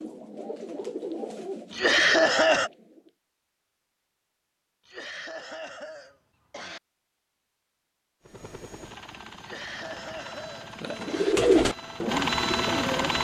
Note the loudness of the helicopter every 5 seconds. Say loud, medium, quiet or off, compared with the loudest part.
off, quiet, loud.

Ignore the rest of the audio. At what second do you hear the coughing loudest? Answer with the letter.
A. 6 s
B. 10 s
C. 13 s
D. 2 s
D.